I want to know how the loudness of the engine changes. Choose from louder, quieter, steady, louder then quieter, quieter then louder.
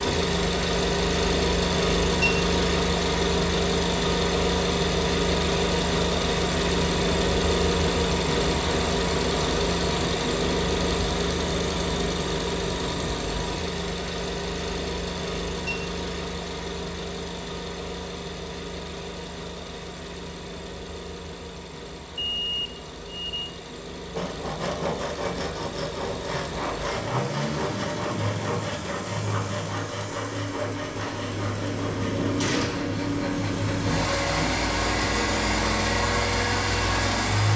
quieter then louder.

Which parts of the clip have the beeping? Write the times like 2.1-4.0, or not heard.
22.1-23.5.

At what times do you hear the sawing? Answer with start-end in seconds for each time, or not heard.
24.1-34.5.